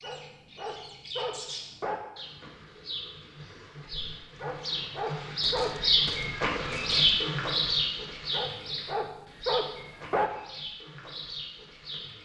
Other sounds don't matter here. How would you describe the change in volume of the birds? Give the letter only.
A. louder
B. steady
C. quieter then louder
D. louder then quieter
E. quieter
D.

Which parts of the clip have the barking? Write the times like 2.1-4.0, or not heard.
0.0-1.9, 4.4-5.8, 8.3-10.3.